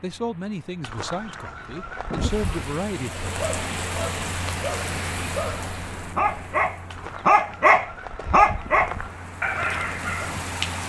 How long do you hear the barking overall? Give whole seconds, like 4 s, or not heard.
7 s.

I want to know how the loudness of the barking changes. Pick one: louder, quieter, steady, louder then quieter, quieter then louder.
louder then quieter.